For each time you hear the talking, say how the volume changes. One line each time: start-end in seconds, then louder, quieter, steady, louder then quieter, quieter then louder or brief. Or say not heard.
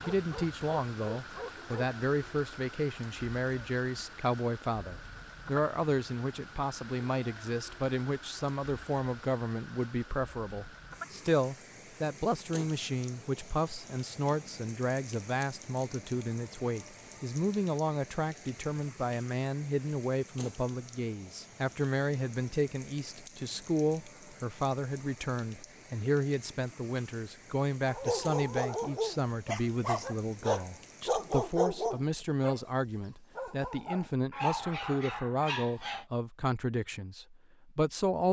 0.1-38.2 steady.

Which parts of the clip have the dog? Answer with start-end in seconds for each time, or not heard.
0.0-2.0, 27.9-32.6, 33.4-36.0.